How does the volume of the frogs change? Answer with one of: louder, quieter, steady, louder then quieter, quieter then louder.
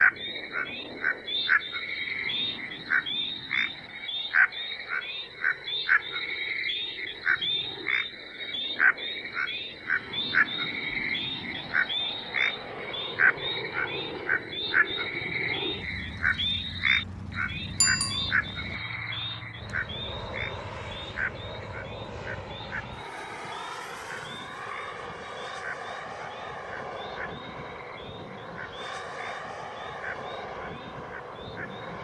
quieter.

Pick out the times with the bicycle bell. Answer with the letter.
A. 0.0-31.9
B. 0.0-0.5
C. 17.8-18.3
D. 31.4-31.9
C.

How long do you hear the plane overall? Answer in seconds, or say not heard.
32 s.